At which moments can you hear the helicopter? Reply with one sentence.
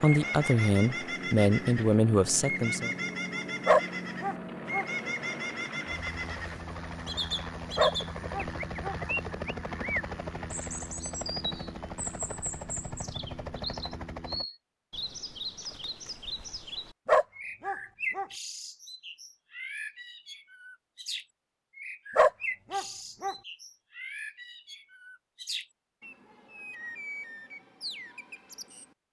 You can hear the helicopter from 0.0 to 14.4 s.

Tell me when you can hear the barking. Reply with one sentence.
The barking can be heard from 3.6 to 4.8 s, from 7.8 to 8.9 s, from 17.1 to 18.2 s and from 22.1 to 23.4 s.